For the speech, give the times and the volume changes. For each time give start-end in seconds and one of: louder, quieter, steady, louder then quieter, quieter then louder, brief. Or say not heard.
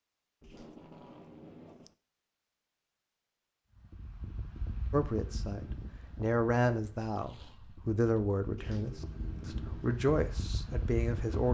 4.9-11.4 quieter then louder.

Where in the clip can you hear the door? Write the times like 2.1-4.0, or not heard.
not heard.